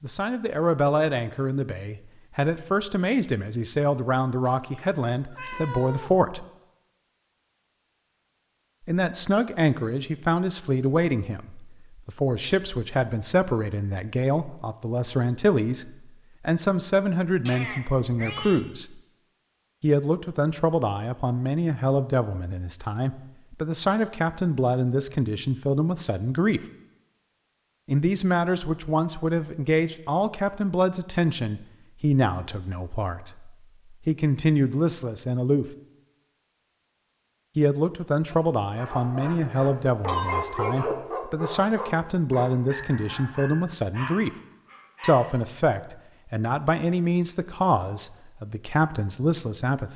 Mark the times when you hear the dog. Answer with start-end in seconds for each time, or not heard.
38.3-45.4.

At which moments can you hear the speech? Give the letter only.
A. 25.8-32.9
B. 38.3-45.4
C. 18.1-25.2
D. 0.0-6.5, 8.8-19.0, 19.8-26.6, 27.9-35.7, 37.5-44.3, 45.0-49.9
D.